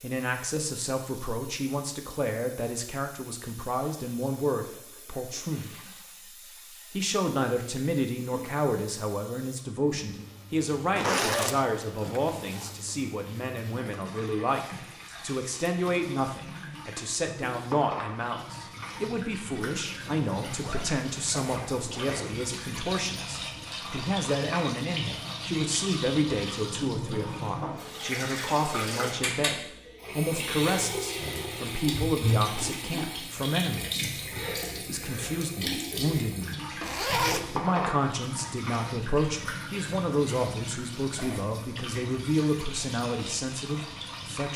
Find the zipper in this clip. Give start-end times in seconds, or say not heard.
10.9-12.7, 20.5-22.3, 36.8-37.5.